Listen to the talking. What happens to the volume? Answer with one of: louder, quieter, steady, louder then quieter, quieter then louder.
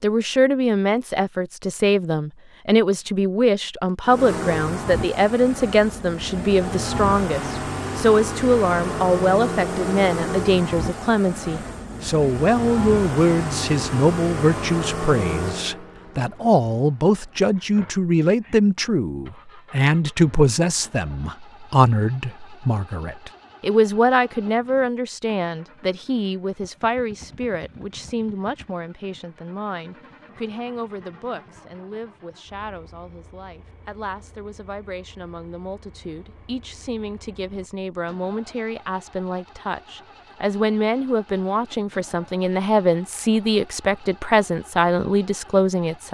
quieter then louder.